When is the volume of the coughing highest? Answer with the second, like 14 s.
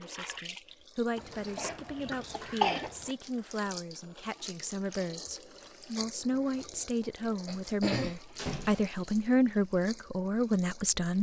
3 s.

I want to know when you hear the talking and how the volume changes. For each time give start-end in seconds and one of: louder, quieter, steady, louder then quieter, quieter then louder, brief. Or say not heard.
0.0-11.1 louder.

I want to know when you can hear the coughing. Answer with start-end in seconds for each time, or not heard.
1.1-3.1, 6.3-8.2.